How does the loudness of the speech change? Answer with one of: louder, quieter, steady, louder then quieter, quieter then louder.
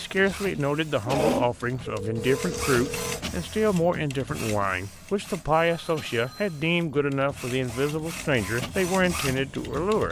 steady.